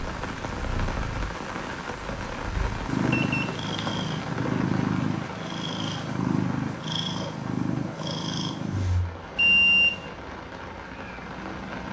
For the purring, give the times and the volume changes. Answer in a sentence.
The purring can be heard from 0.1 to 11.8 s, getting louder then quieter.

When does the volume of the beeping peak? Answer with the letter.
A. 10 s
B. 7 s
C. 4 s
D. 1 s
A.